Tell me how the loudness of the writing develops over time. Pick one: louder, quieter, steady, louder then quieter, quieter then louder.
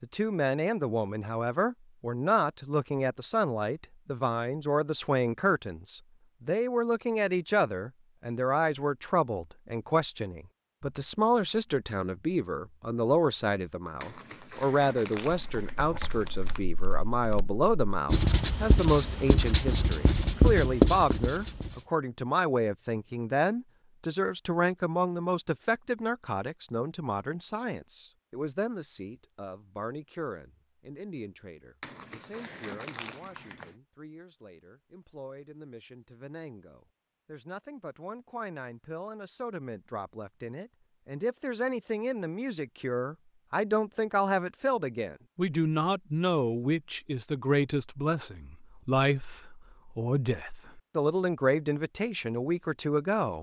louder.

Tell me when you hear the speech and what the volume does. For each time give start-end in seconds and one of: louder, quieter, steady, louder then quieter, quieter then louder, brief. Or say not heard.
0.0-53.3 quieter then louder.